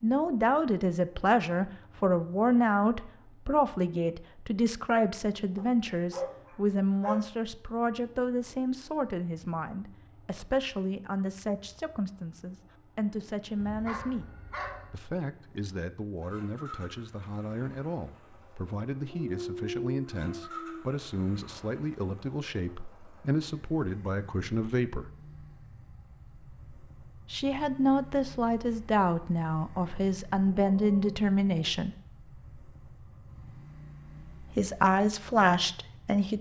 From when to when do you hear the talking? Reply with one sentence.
The talking can be heard from 0.0 to 14.2 s, from 14.9 to 25.1 s, from 27.3 to 31.9 s and from 34.5 to 36.3 s.